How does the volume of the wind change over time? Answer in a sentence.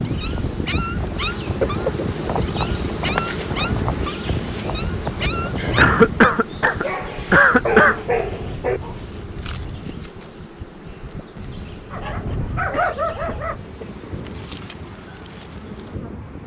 The loudness of the wind goes down.